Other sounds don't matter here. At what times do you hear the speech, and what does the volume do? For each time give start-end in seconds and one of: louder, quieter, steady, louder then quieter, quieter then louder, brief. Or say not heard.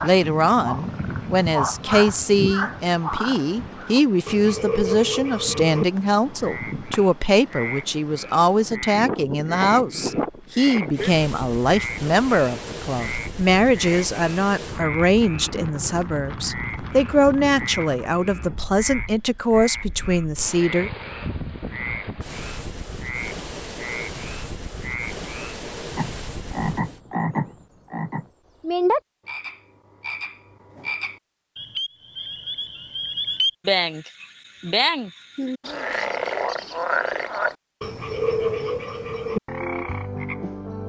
0.0-20.9 steady.